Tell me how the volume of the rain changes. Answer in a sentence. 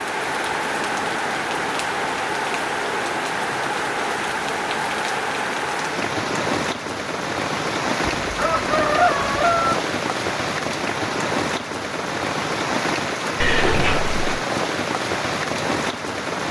The loudness of the rain stays about the same.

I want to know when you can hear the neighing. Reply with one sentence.
The neighing can be heard from 13.3 to 14.4 s.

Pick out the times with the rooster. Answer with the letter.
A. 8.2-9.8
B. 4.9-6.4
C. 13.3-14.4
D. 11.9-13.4
A.